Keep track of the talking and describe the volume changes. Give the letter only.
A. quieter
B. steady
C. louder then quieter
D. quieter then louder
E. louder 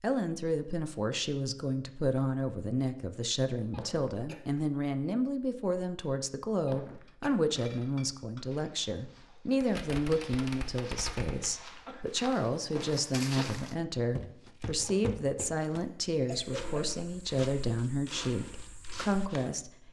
B.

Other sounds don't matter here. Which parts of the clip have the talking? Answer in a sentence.
You can hear the talking from 0.0 to 19.8 s.